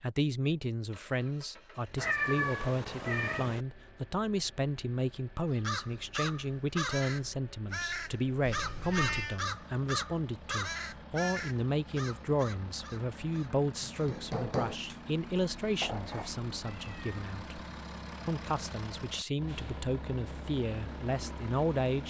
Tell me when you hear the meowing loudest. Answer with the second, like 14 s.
2 s.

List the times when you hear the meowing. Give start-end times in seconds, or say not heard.
1.9-3.6, 8.4-9.4, 15.8-17.1.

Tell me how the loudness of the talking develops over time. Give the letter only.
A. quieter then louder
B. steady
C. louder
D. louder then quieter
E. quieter
B.